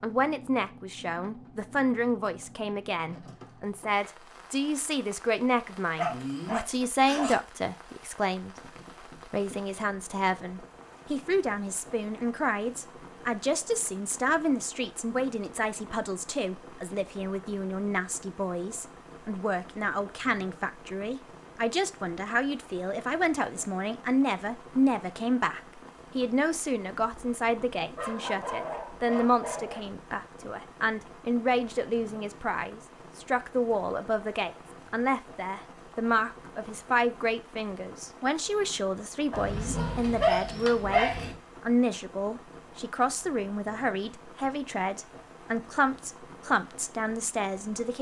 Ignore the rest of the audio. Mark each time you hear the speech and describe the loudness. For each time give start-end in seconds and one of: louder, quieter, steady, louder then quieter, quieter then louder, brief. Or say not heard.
0.0-47.9 steady.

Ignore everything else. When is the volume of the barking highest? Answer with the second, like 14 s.
40 s.